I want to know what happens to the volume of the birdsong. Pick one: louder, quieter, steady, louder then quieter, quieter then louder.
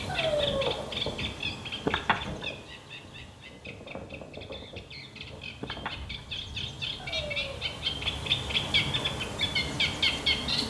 quieter then louder.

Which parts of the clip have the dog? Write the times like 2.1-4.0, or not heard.
0.1-1.0, 7.0-7.8.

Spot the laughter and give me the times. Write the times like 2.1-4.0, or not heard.
1.9-2.5, 5.6-6.2.